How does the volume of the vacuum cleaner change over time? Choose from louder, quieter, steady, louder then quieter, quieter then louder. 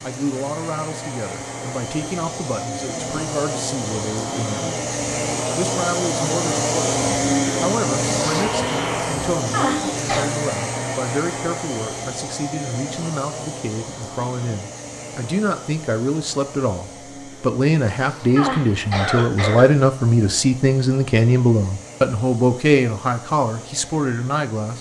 louder then quieter.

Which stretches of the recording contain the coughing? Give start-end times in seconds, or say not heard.
9.5-10.2, 18.4-19.7.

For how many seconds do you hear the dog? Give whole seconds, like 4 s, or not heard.
not heard.